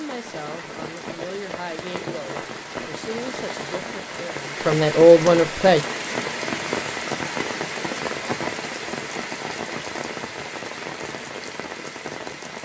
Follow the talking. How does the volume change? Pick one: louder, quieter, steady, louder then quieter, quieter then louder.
louder.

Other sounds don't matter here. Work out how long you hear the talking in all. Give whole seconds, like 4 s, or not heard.
6 s.